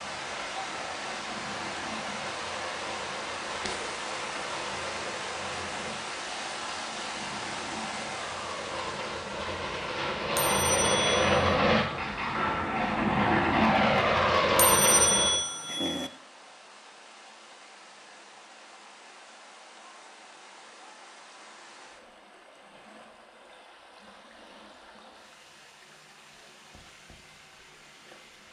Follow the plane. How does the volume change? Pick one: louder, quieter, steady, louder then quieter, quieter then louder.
louder.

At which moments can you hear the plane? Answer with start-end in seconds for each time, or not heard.
0.0-15.4.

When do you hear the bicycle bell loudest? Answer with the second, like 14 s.
15 s.